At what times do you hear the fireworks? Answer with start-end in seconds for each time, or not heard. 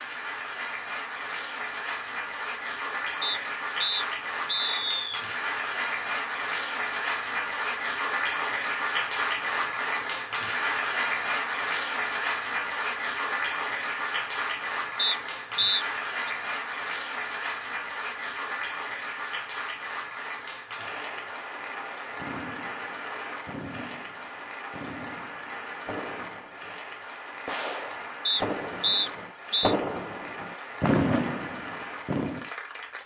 22.1-32.5.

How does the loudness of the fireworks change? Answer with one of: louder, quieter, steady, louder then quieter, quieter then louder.
louder.